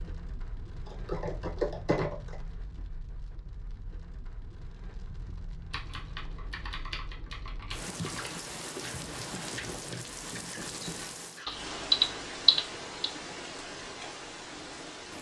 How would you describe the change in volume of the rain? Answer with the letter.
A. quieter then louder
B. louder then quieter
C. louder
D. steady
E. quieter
C.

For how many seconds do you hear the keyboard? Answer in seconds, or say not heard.
6 s.